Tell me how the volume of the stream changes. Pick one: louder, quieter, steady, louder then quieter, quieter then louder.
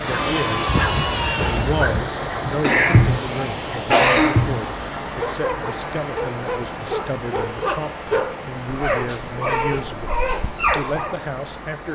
quieter.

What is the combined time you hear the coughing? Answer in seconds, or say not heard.
2 s.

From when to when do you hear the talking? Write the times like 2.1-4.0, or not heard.
0.0-11.8.